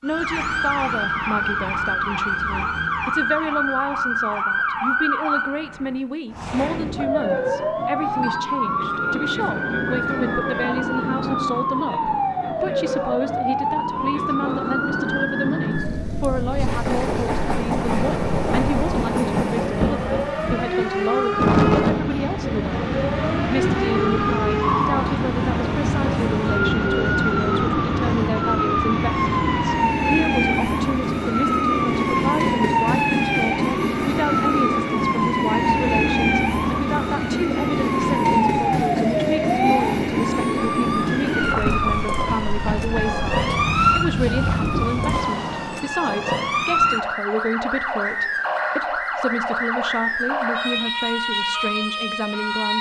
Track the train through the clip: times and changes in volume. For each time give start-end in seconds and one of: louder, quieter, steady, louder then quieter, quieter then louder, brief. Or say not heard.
16.4-46.0 steady.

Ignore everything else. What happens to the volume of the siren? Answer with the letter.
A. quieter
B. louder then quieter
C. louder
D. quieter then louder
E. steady
E.